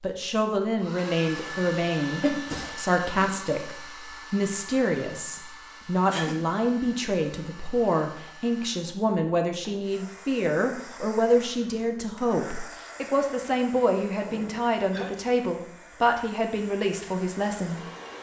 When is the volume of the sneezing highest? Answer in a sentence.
The volume of the sneezing peaks at 2 seconds.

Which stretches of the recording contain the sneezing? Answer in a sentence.
You can hear the sneezing from 1.4 to 3.4 s, from 6.0 to 6.5 s and from 14.2 to 15.3 s.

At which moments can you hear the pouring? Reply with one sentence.
You can't hear the pouring here.